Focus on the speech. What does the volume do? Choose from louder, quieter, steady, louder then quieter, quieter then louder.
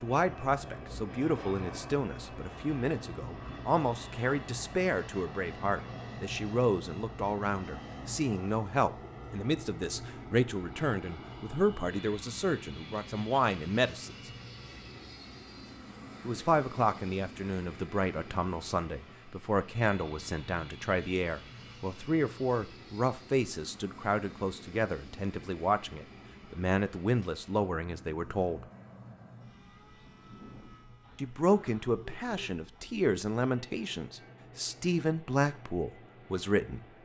steady.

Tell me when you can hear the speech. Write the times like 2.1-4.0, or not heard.
0.0-14.3, 16.2-28.6, 31.1-36.8.